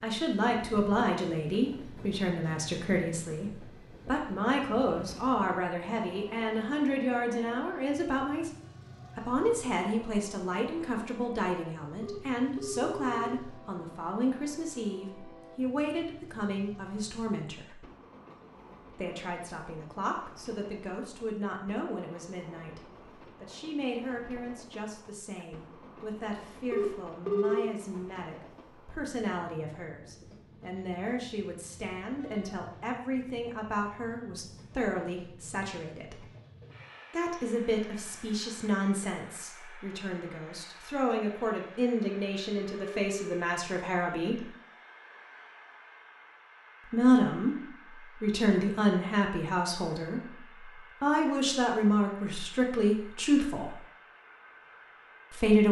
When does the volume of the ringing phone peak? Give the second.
27 s.